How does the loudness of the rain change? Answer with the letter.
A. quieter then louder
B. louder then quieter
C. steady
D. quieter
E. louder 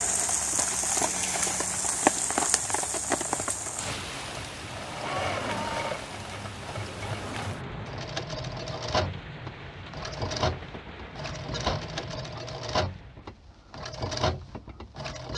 D.